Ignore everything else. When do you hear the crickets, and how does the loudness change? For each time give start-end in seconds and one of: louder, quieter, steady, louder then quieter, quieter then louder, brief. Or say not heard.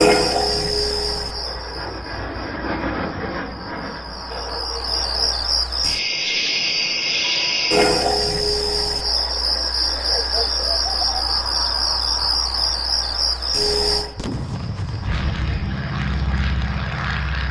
0.0-17.4 louder then quieter.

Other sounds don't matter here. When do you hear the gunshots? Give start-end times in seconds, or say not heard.
14.2-15.7.